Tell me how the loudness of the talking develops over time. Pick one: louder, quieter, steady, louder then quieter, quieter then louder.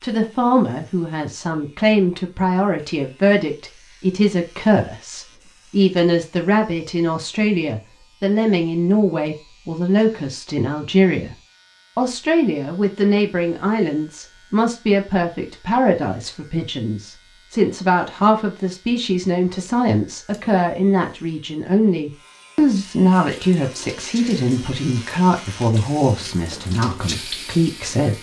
steady.